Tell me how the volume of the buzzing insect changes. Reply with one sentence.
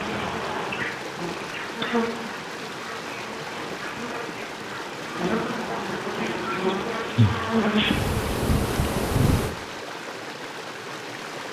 The volume of the buzzing insect goes down, then up.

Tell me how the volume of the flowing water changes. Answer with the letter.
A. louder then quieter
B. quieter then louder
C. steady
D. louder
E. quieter
C.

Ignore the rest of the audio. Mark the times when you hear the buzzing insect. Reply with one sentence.
You can hear the buzzing insect from 0.0 to 9.6 s.